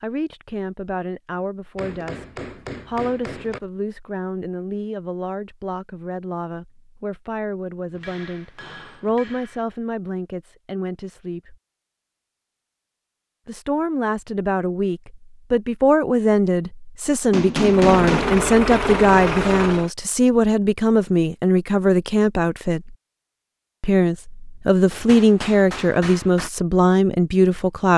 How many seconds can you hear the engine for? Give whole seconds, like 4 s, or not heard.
2 s.